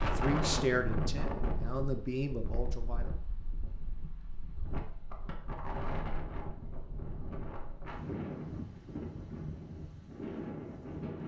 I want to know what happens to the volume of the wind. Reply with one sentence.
The loudness of the wind goes down, then up.